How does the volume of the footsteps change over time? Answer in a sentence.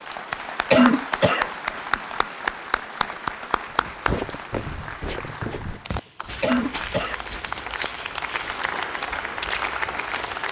The volume of the footsteps goes down.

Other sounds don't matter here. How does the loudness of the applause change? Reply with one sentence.
The volume of the applause goes down, then up.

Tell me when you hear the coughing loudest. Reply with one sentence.
The volume of the coughing peaks at 1 second.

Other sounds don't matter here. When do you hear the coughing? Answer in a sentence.
The coughing can be heard from 0.7 to 1.7 s and from 6.4 to 7.4 s.